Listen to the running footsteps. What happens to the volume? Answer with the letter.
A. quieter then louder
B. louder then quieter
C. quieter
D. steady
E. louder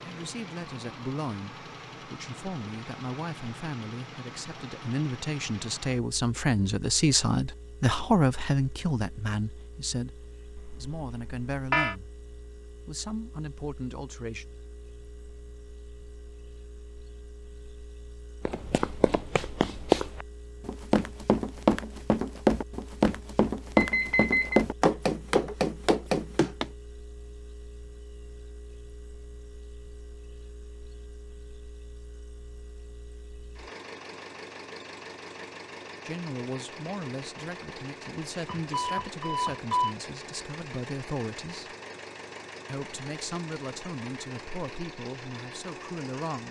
D.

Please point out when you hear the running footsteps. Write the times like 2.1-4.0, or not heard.
18.4-26.6.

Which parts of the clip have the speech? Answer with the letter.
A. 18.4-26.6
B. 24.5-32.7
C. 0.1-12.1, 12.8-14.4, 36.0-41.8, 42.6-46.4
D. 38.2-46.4
C.